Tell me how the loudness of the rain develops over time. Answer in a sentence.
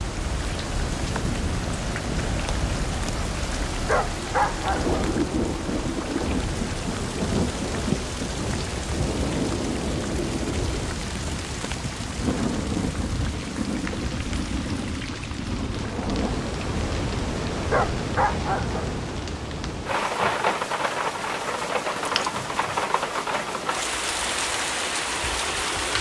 The volume of the rain stays about the same.